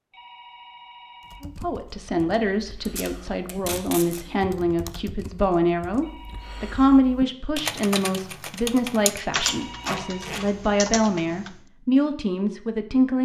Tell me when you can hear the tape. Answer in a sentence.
The tape can be heard from 2.9 to 4.2 s and from 9.4 to 10.4 s.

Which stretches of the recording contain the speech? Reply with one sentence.
You can hear the speech from 1.4 to 13.1 s.